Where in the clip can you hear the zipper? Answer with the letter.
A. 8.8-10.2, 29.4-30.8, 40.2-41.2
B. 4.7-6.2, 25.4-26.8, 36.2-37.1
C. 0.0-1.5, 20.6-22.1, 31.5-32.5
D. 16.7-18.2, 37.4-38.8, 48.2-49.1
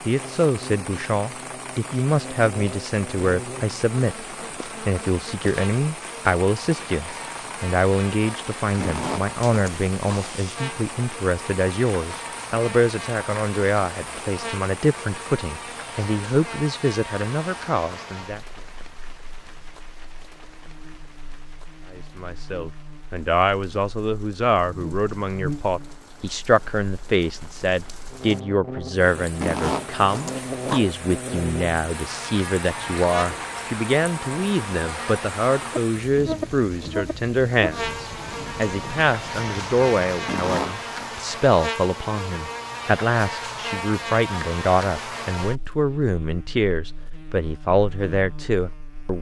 A.